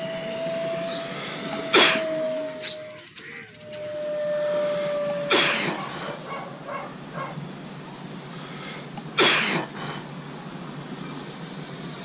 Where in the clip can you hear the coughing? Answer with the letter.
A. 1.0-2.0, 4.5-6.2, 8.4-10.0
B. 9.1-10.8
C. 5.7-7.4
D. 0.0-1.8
A.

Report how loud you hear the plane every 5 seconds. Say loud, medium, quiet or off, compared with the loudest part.
loud, medium, medium.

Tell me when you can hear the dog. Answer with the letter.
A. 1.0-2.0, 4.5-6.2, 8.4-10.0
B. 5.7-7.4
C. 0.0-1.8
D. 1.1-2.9
B.